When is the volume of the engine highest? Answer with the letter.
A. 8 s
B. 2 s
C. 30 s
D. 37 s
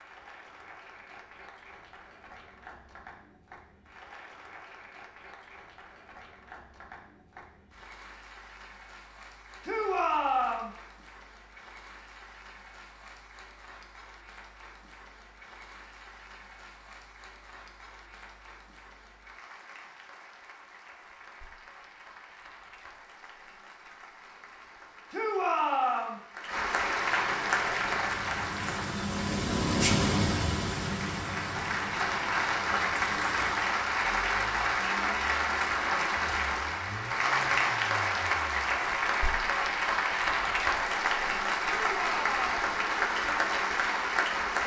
C.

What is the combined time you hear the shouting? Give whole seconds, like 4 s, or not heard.
3 s.